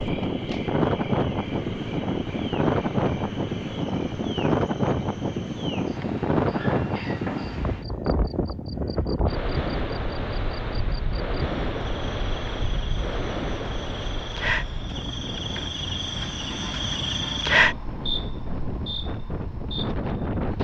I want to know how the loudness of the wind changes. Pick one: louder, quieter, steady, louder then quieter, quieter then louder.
quieter.